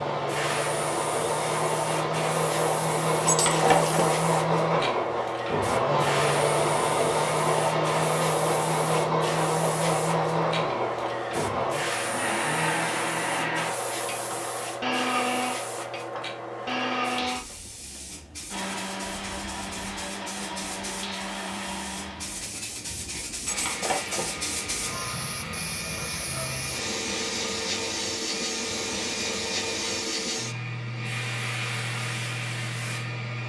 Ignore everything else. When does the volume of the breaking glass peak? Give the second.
4 s.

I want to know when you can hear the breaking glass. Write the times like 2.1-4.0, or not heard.
3.2-4.2, 23.4-24.4.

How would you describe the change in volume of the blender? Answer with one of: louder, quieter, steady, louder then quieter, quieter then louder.
quieter.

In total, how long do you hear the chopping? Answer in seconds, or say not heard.
not heard.